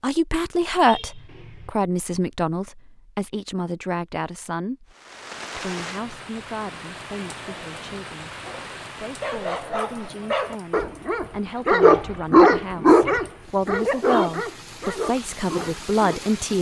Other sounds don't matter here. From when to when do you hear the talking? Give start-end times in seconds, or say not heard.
0.0-5.0, 5.5-16.5.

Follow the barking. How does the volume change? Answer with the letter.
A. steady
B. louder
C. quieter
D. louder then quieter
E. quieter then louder
D.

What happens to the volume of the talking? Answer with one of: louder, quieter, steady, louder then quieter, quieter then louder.
quieter then louder.